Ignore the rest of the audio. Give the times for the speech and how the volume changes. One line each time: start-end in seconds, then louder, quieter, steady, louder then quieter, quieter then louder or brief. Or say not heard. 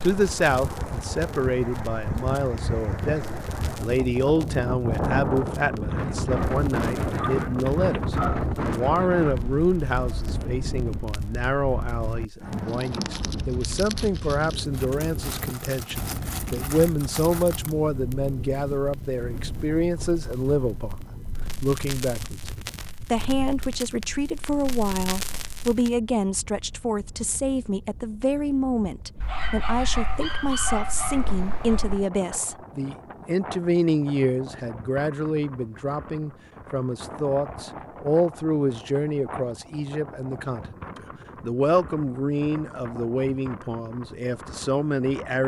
0.0-45.4 steady.